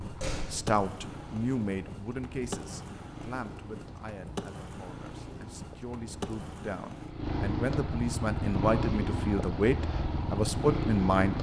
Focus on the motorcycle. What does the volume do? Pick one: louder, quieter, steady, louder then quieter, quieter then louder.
louder.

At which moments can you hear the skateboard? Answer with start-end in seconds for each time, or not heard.
0.0-7.1.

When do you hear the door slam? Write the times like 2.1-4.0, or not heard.
0.0-0.8.